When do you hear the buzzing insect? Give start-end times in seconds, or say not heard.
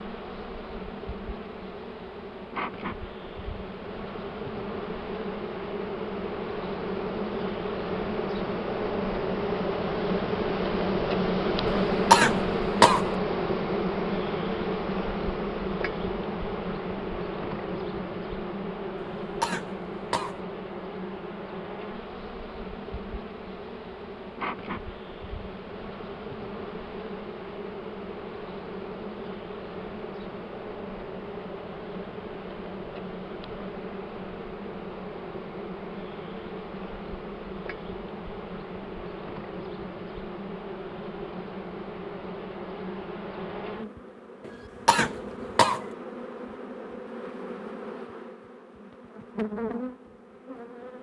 0.0-50.9.